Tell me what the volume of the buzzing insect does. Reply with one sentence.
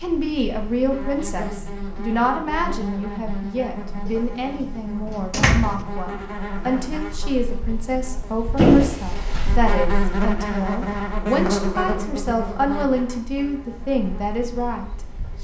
The volume of the buzzing insect goes up, then down.